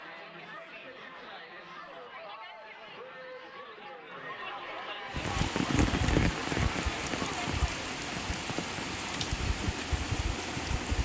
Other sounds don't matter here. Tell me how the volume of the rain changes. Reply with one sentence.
The loudness of the rain goes down.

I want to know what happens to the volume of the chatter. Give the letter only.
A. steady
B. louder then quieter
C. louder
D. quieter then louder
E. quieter
C.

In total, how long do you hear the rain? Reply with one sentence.
The rain can be heard for 6 seconds in total.